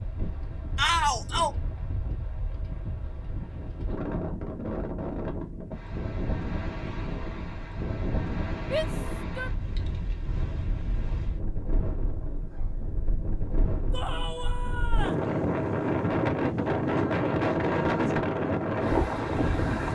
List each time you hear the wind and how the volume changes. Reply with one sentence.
You can hear the wind from 0.0 to 19.9 s, getting louder.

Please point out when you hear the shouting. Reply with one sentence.
The shouting can be heard from 0.8 to 1.5 s, from 8.6 to 9.5 s and from 13.9 to 15.2 s.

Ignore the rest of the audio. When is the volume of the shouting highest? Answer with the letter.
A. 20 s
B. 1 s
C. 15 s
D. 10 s
B.